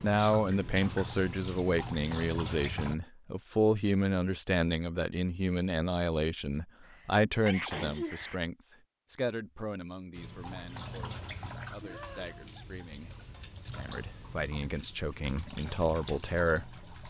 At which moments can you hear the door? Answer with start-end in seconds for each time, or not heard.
not heard.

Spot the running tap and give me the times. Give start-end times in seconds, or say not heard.
0.0-3.0, 10.2-17.0.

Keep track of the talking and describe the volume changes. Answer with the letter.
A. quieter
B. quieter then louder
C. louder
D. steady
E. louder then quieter
B.